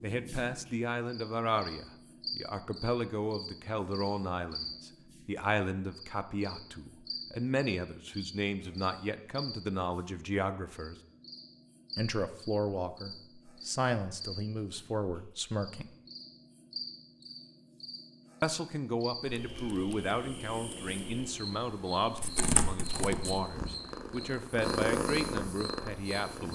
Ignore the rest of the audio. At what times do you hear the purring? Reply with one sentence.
The purring can be heard from 19.2 to 26.4 s.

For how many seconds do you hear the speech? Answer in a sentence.
You can hear the speech for 23 seconds altogether.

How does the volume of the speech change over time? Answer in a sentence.
The loudness of the speech stays about the same.